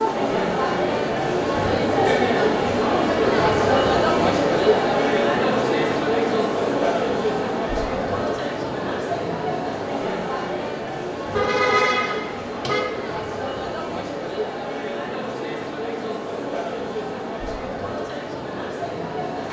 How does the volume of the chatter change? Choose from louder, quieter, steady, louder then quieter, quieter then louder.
quieter.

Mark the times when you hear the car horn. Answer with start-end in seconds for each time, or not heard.
11.3-12.8.